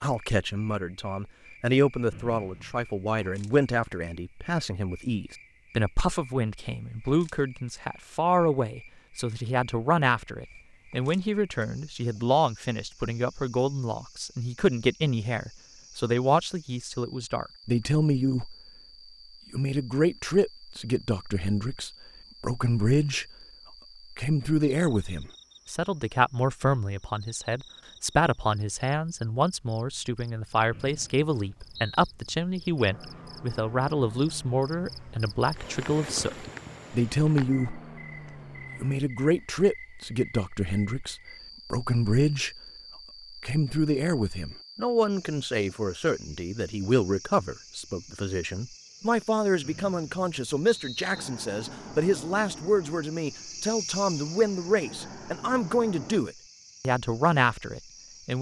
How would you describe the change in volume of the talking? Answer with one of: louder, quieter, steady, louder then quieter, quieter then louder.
steady.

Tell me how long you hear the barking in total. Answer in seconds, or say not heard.
not heard.